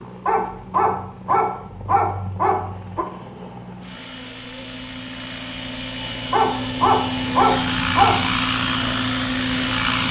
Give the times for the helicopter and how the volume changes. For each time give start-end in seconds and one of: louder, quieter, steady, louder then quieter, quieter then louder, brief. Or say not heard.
0.0-10.0 louder.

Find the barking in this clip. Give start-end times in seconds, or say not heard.
0.2-3.0, 6.3-8.3.